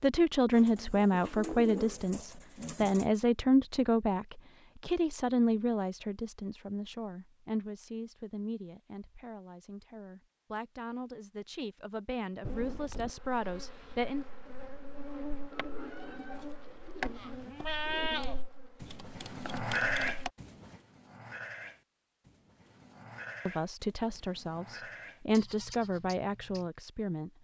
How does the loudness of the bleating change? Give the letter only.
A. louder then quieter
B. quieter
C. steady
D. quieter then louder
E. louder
B.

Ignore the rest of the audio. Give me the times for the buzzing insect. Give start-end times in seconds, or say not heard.
12.4-20.3.